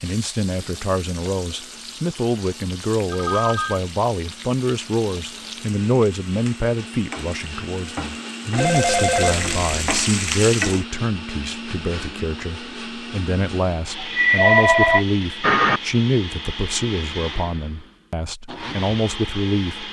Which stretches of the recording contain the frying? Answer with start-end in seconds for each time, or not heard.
0.0-10.8.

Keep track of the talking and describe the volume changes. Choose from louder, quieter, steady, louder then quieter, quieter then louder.
steady.